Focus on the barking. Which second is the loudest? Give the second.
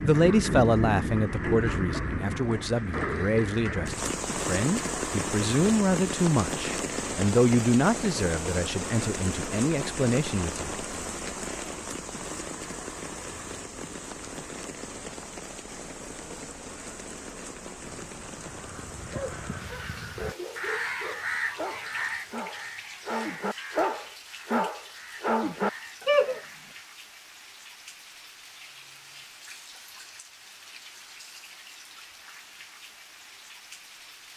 26 s.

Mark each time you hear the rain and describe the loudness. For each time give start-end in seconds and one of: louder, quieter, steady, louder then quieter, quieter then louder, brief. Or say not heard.
0.0-34.3 quieter.